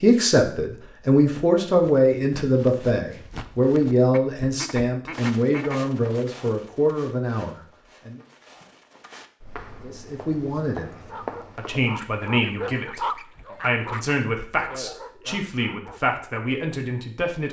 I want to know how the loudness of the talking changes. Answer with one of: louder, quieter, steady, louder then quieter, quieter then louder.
quieter.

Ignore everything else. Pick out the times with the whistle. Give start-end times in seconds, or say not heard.
not heard.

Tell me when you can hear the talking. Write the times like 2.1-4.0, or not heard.
0.0-8.2, 9.8-17.4.